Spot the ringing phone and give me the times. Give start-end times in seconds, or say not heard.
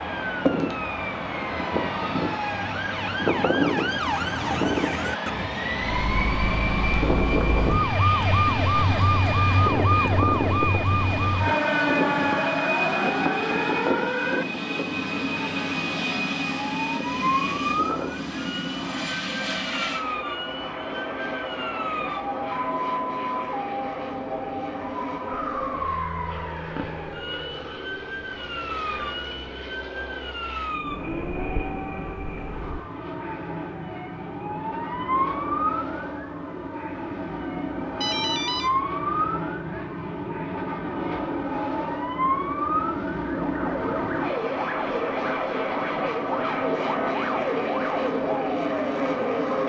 38.0-38.7.